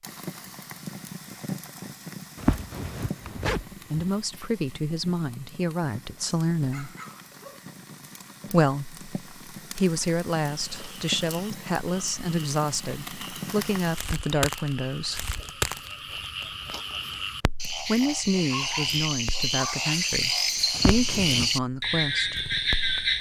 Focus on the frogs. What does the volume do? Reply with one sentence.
The volume of the frogs goes up.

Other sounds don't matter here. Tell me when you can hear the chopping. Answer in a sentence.
You can't hear the chopping here.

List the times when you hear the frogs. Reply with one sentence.
The frogs can be heard from 10.6 to 23.1 s.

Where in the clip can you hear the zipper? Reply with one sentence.
You can hear the zipper from 2.4 to 4.0 s and from 20.8 to 21.5 s.